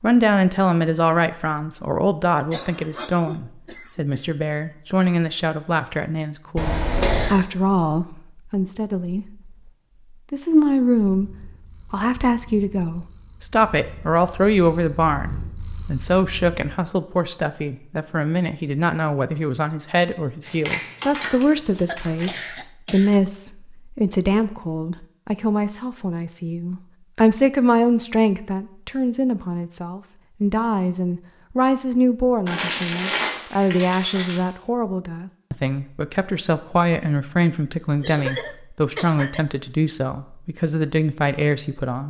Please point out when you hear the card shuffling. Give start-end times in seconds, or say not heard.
6.5-7.3, 20.4-22.4, 32.5-34.4.